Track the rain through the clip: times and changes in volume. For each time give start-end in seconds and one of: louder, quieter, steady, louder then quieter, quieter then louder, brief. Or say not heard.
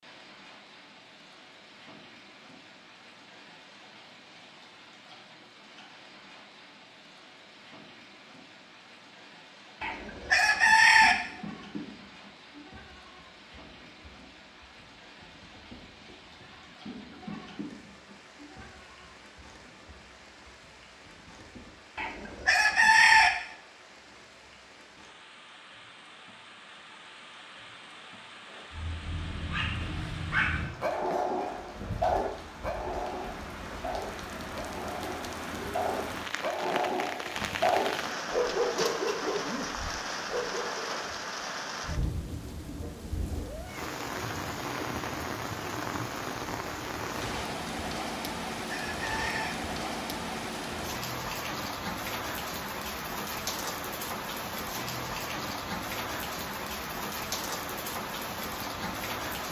0.0-59.4 louder.